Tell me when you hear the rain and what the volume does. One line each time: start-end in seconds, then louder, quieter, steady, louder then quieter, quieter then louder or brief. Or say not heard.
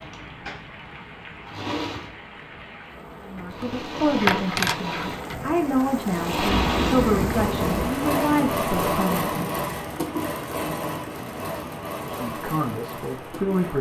0.0-13.7 louder then quieter.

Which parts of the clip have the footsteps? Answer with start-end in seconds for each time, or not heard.
not heard.